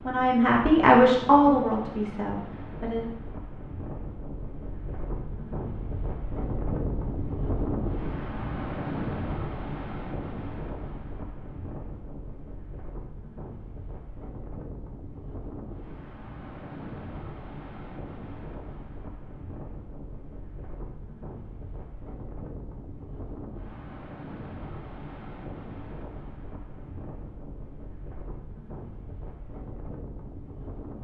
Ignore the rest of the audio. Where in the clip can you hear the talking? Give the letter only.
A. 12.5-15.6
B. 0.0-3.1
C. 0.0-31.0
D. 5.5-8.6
B.